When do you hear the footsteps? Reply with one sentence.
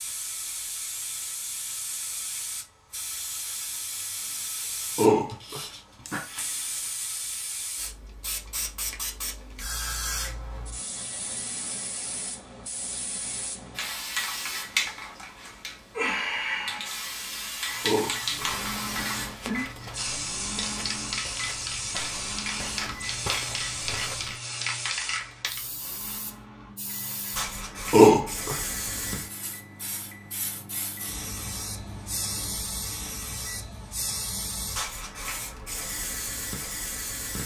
You can hear the footsteps from 18.4 to 24.4 s.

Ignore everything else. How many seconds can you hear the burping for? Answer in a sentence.
The burping can be heard for 4 seconds in total.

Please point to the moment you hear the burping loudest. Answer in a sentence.
The loudest moment of the burping is at 28 seconds.